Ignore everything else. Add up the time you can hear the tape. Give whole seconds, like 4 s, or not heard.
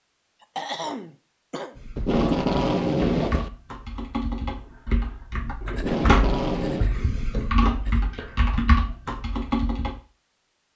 3 s.